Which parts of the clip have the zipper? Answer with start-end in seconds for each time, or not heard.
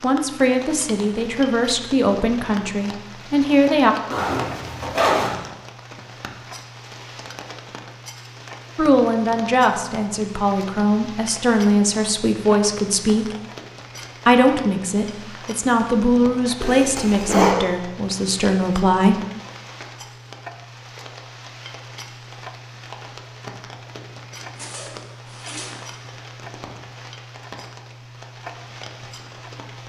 4.1-5.3, 16.6-17.6, 24.6-25.8.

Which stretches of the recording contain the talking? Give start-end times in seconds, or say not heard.
0.0-4.0, 8.8-13.3, 14.2-19.2.